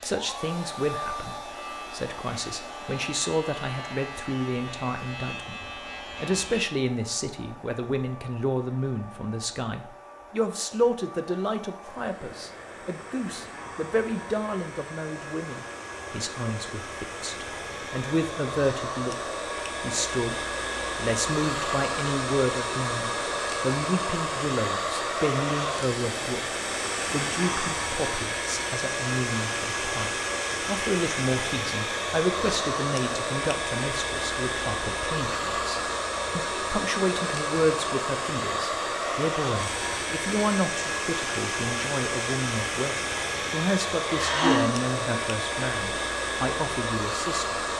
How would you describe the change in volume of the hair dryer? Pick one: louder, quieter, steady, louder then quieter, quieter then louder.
louder.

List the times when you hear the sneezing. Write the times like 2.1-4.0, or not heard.
44.0-44.6.